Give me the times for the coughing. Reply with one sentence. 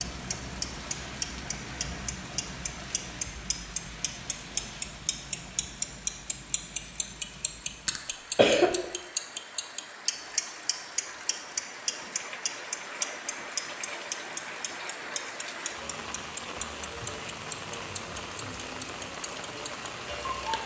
The coughing can be heard from 7.8 to 8.8 s.